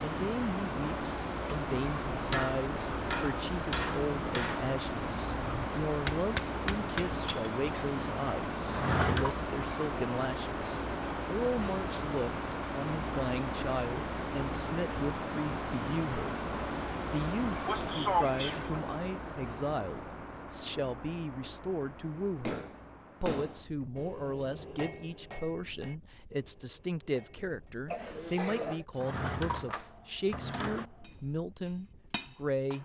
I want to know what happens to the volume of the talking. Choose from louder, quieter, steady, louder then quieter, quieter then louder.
steady.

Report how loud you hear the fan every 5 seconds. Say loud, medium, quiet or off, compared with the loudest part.
loud, loud, loud, loud, quiet, quiet, quiet.